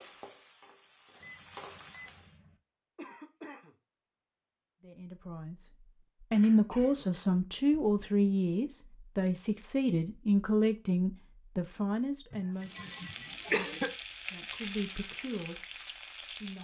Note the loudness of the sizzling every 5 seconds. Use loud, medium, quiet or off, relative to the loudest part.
medium, off, loud, loud.